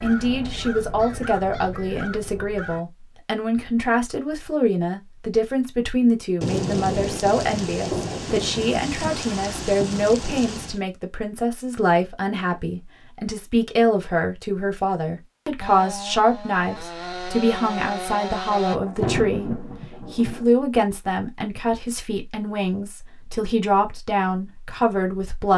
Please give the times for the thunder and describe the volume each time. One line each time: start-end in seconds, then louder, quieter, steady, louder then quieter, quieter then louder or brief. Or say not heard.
6.4-10.8 steady
18.9-20.4 brief.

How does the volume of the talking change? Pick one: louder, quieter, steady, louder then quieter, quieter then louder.
steady.